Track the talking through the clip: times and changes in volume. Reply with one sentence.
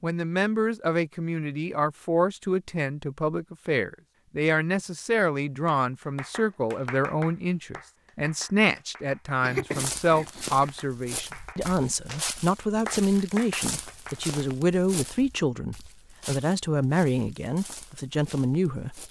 The talking can be heard from 0.0 to 19.0 s, at a steady volume.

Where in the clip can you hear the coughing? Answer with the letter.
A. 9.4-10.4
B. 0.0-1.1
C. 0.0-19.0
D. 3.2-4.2
A.